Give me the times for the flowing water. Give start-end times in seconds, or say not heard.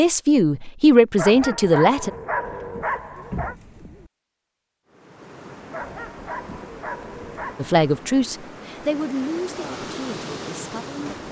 4.8-11.2.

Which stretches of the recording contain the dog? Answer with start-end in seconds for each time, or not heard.
1.1-3.5, 5.7-7.7.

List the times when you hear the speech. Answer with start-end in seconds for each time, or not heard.
0.0-2.1, 7.5-11.2.